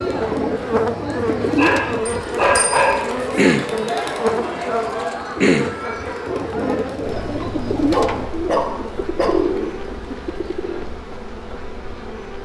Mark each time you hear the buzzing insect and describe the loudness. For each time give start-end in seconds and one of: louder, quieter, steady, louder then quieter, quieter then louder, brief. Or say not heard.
0.0-12.4 quieter.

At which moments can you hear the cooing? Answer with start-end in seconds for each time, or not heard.
0.0-10.8.